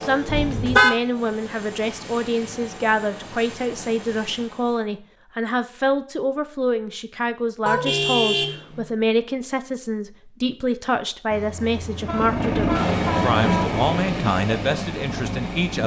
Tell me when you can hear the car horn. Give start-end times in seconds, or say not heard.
0.2-0.9, 7.7-8.8, 11.3-13.8.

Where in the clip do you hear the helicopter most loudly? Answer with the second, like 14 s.
13 s.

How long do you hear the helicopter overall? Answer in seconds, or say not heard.
9 s.